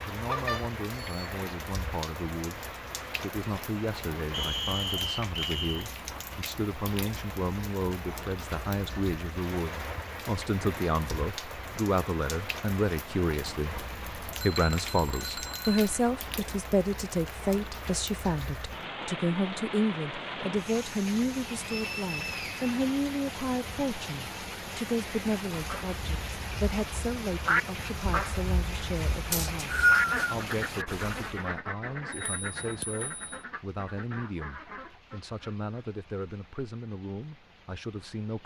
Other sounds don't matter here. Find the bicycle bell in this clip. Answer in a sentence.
The bicycle bell can be heard from 0.2 to 1.4 s, from 14.4 to 16.0 s and from 32.1 to 33.4 s.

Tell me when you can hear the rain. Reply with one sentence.
The rain can be heard from 0.0 to 38.4 s.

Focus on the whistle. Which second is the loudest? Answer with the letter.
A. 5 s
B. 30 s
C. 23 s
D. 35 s
B.